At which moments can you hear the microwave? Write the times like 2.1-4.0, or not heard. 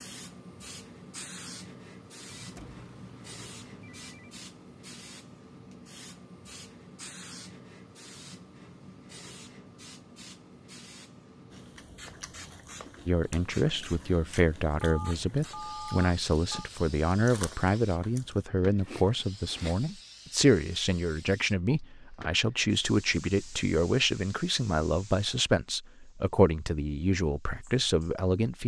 not heard.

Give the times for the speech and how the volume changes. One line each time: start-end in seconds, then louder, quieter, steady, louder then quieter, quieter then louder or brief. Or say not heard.
13.1-28.6 steady.